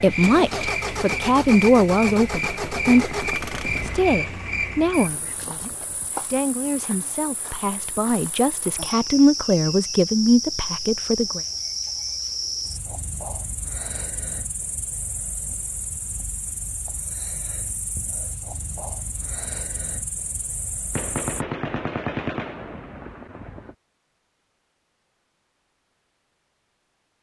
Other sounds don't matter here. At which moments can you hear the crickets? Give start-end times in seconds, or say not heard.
0.0-21.4.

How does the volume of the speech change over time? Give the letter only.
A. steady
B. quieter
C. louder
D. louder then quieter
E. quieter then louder
E.